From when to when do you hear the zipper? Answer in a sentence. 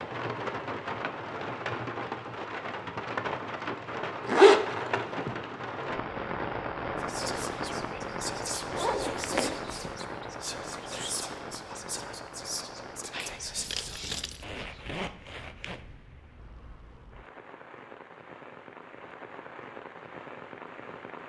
You can hear the zipper from 4.2 to 5.2 s, from 8.7 to 9.8 s and from 14.4 to 15.8 s.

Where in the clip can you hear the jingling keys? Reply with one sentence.
You can hear the jingling keys from 13.6 to 14.4 s.